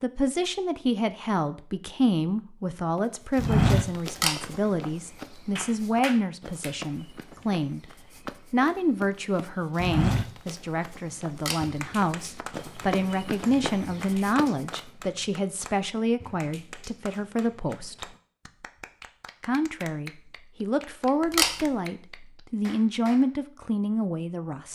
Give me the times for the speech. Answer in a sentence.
The speech can be heard from 0.0 to 7.8 s, from 8.5 to 18.1 s and from 19.4 to 24.6 s.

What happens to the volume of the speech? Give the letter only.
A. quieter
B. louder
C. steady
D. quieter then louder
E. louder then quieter
C.